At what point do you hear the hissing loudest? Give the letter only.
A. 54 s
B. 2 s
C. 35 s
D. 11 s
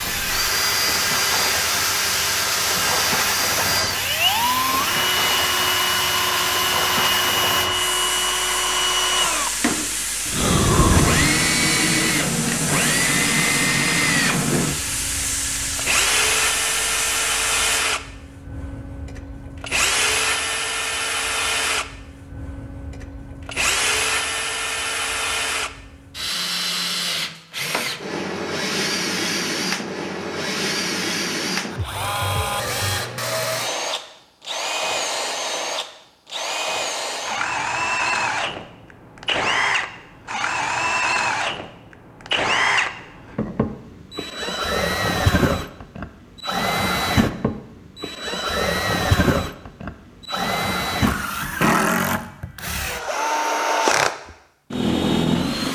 D.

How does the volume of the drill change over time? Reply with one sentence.
The loudness of the drill stays about the same.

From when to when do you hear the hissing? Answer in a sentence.
The hissing can be heard from 0.0 to 17.8 s.